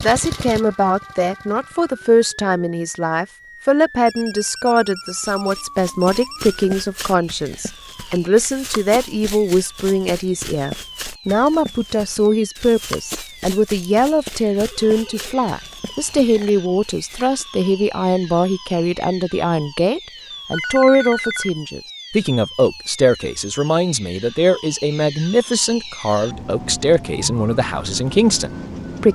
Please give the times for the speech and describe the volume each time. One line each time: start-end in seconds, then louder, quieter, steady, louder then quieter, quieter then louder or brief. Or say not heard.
0.0-29.1 steady.